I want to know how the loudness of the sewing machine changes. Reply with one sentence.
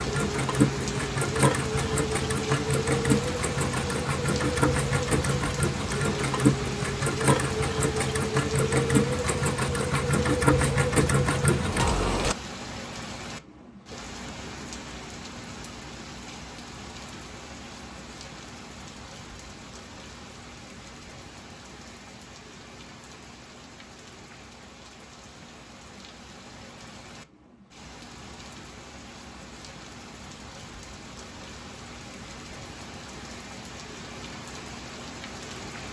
The volume of the sewing machine stays about the same.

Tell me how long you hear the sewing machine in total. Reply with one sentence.
The sewing machine can be heard for 12 seconds in total.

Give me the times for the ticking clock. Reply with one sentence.
The ticking clock can't be heard in this clip.